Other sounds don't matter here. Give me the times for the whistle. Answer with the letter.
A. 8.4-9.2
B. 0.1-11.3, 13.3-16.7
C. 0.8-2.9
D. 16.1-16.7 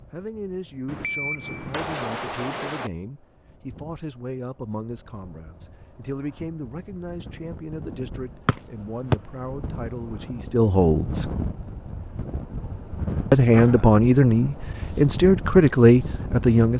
A.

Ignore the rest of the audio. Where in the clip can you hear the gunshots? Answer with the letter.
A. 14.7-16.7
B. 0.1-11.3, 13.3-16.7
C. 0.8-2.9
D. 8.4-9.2
C.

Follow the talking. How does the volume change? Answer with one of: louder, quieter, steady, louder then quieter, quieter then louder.
louder.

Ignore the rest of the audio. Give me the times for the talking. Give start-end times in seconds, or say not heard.
0.1-11.3, 13.3-16.7.